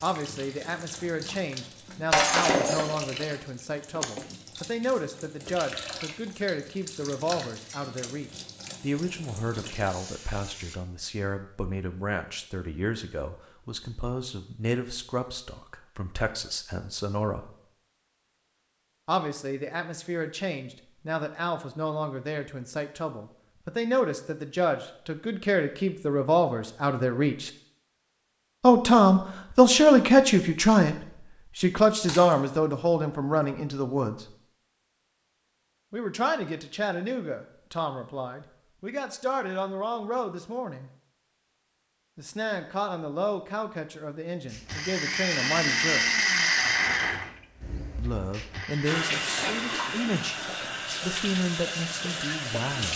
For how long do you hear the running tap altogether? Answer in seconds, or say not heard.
15 s.